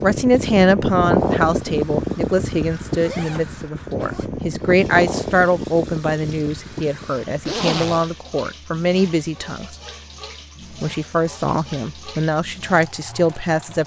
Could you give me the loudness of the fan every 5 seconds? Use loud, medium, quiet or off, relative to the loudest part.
loud, medium, off.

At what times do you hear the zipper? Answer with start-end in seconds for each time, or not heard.
2.9-4.3, 7.5-8.1.